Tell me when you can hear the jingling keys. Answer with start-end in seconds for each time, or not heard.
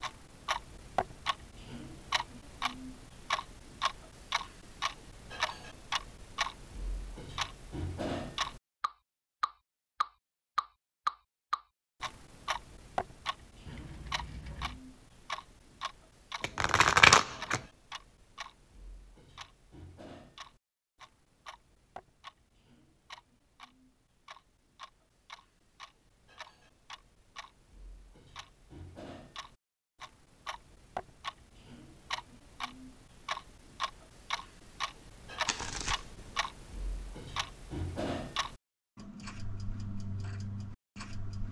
13.7-14.8.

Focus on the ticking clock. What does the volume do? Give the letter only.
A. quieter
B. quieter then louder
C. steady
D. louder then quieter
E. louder
B.